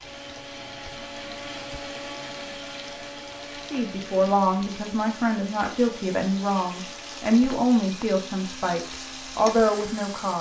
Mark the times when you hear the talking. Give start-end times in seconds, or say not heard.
3.7-10.3.